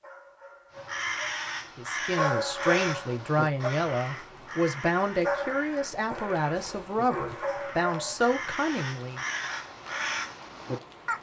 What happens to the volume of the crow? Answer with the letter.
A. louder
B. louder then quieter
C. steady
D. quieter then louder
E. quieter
D.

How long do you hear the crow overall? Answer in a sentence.
The crow can be heard for 10 seconds in total.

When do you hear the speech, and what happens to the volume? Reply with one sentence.
You can hear the speech from 1.8 to 9.2 s, at a steady volume.